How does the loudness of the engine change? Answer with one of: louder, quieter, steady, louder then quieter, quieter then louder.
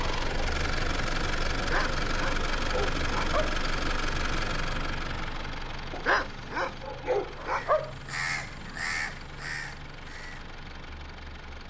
quieter.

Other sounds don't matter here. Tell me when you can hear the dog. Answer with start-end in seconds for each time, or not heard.
1.6-3.5, 5.9-7.9.